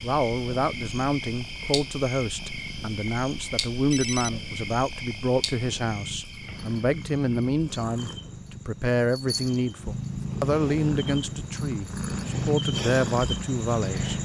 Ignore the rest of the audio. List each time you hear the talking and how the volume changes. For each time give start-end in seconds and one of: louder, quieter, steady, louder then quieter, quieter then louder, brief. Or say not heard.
0.0-14.1 steady.